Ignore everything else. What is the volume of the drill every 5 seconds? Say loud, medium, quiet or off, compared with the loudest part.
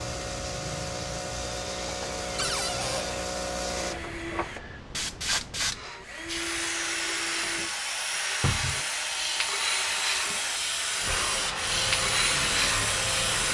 medium, medium, loud.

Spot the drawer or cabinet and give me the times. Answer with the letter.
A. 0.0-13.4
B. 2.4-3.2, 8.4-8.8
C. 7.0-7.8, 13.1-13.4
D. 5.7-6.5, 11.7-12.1
B.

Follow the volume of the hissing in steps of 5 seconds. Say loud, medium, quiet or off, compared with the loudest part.
medium, loud, loud.